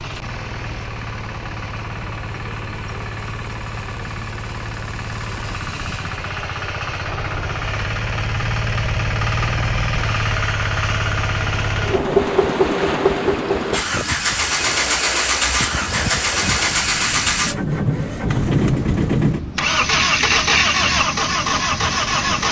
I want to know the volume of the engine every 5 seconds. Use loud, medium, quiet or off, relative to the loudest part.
quiet, medium, loud, loud, loud.